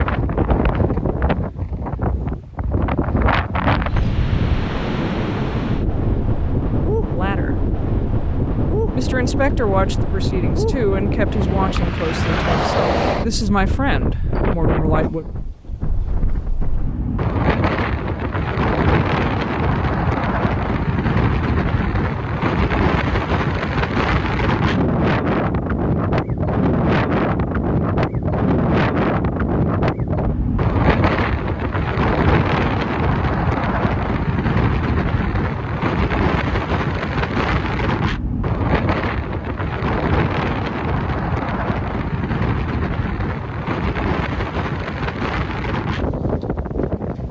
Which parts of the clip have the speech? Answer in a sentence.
You can hear the speech from 7.1 to 7.5 s and from 8.9 to 15.2 s.